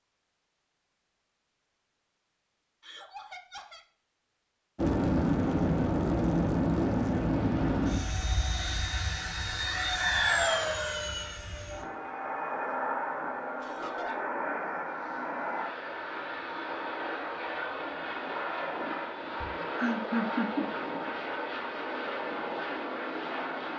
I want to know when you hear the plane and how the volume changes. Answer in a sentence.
The plane can be heard from 4.8 to 23.7 s, getting quieter.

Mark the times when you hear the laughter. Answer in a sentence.
The laughter can be heard from 2.8 to 3.9 s, from 13.6 to 14.3 s and from 19.4 to 20.6 s.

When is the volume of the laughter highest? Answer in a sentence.
The loudest moment of the laughter is at 20 seconds.